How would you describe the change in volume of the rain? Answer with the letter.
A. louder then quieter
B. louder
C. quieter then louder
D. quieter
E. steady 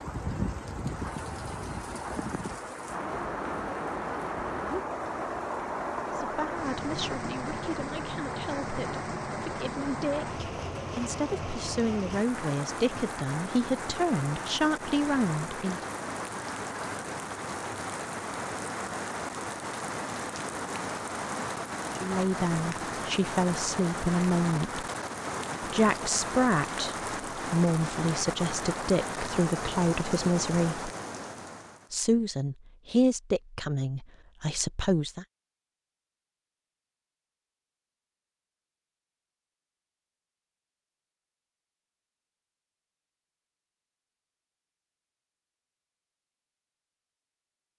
E.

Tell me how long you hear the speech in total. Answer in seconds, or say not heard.
21 s.